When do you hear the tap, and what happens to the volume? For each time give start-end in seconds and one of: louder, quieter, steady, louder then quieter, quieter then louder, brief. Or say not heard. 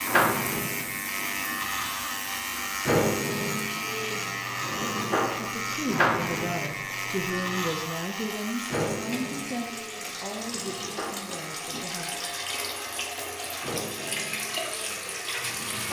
0.0-15.8 louder.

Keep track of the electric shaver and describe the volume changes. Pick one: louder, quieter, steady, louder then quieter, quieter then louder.
quieter.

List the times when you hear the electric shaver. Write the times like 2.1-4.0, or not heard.
0.0-15.8.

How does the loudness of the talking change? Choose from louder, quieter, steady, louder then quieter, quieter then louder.
quieter.